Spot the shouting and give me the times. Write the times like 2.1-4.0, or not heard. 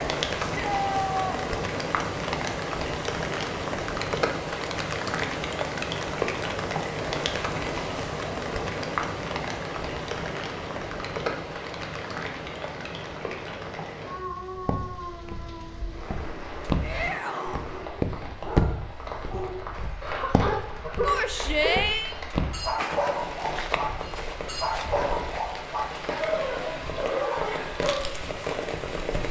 0.6-1.4, 16.8-17.6, 21.1-22.1.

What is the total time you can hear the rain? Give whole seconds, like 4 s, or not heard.
29 s.